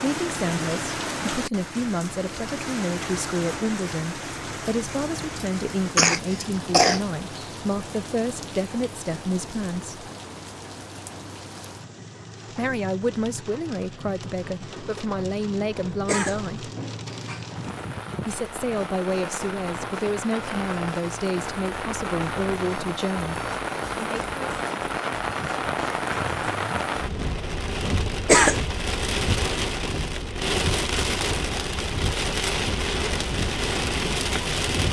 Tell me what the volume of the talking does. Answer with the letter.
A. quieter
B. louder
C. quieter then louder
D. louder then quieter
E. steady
E.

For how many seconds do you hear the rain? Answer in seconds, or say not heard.
35 s.